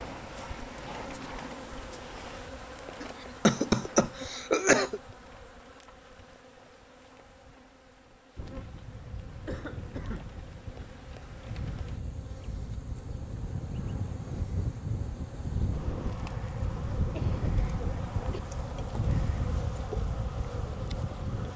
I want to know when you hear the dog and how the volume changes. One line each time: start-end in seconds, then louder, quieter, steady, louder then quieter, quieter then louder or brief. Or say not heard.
not heard.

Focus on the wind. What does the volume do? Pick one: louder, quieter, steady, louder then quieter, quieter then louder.
louder.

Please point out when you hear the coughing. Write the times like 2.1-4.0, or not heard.
3.0-5.0, 9.4-10.3, 17.1-18.4.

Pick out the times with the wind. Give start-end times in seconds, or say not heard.
8.3-21.5.